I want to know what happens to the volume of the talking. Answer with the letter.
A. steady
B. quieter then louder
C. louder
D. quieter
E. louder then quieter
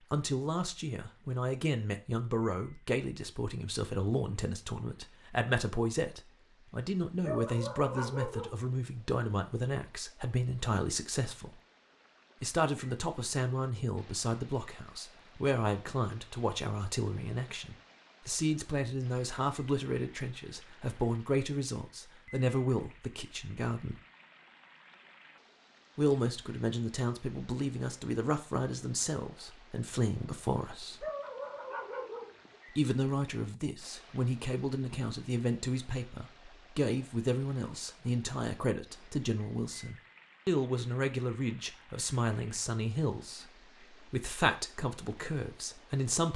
A.